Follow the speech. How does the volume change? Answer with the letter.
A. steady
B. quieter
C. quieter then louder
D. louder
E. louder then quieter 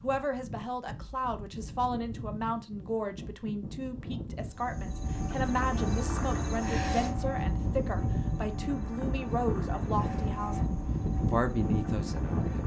A.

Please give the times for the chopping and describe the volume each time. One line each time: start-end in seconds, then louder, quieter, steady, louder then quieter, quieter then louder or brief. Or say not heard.
not heard.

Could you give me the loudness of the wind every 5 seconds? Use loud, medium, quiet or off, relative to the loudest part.
medium, loud, loud.